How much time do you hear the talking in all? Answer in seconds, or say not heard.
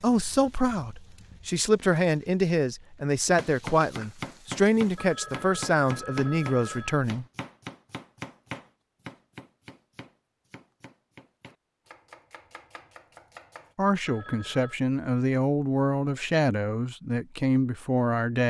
12 s.